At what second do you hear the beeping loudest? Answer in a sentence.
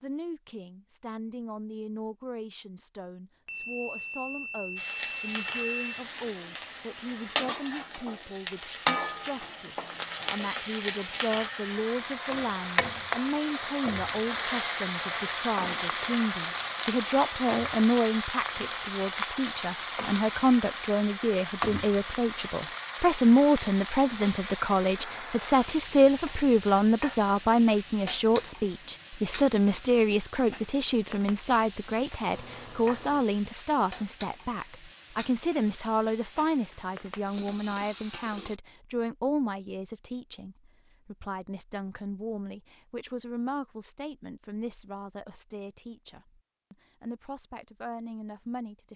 The loudest moment of the beeping is at 6 seconds.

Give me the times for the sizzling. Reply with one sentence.
The sizzling can be heard from 4.8 to 38.6 s.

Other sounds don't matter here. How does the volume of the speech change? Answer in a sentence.
The volume of the speech goes up, then down.